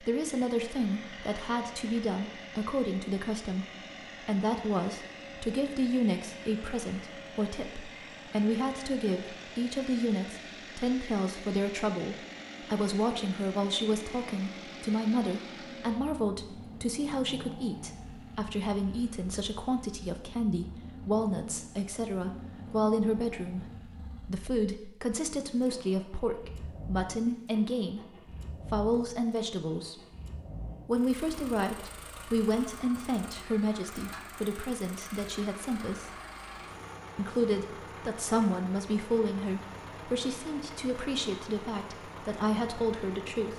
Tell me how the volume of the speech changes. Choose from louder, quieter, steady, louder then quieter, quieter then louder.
steady.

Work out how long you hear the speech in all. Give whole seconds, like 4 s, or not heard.
42 s.